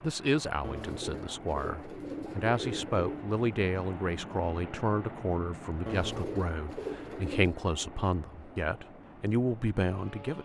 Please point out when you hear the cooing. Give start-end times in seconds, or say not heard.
0.6-3.3, 5.8-7.5.